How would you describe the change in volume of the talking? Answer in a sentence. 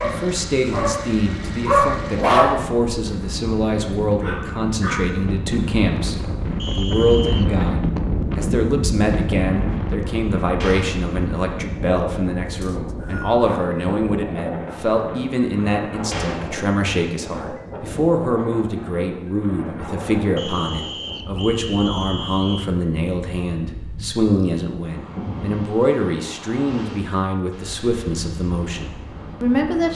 The volume of the talking stays about the same.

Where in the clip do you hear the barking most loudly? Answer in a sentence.
The volume of the barking peaks at 2 seconds.